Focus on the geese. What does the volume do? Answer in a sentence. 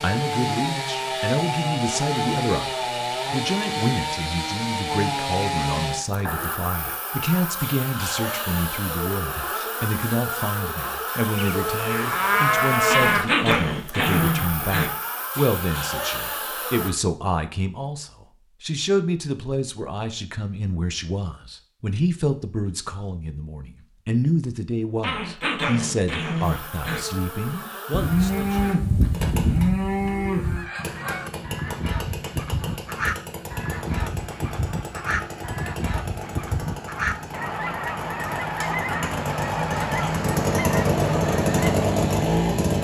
The volume of the geese stays about the same.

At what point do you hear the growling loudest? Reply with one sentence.
The volume of the growling peaks at 13 seconds.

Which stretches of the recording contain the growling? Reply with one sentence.
You can hear the growling from 12.8 to 14.9 s and from 25.0 to 27.0 s.